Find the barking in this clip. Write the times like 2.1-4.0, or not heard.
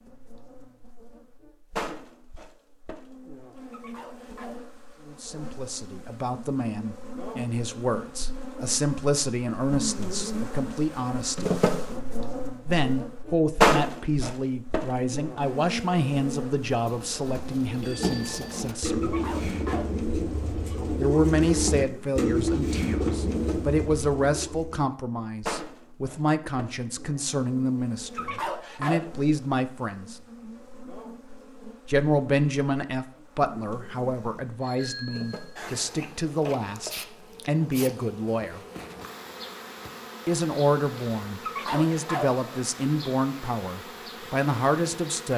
3.7-4.7, 19.0-19.9, 28.1-29.1, 41.4-42.4.